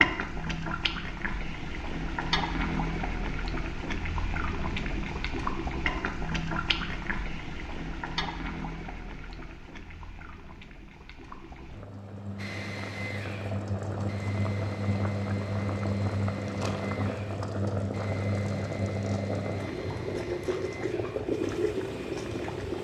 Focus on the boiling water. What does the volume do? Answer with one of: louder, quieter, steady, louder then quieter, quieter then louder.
quieter then louder.